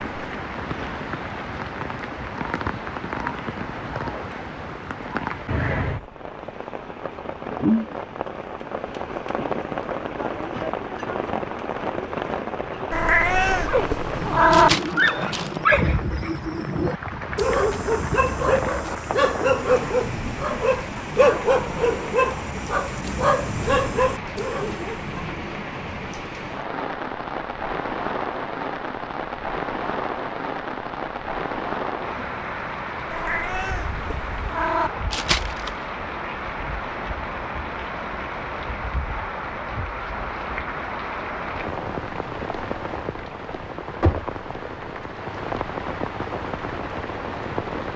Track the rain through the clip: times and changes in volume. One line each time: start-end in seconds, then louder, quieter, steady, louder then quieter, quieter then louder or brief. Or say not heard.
0.0-47.9 steady.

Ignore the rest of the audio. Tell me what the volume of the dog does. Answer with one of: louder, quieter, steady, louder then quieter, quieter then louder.
steady.